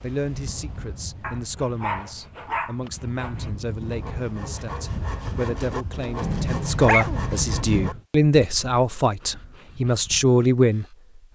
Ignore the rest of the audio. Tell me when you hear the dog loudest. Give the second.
7 s.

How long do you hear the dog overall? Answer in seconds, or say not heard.
3 s.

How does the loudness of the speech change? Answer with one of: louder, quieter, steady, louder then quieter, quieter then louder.
louder.